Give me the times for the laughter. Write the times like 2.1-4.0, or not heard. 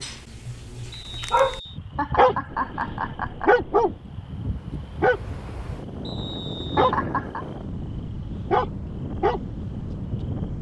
1.9-3.5, 6.8-7.5.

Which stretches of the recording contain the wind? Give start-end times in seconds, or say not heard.
2.5-10.5.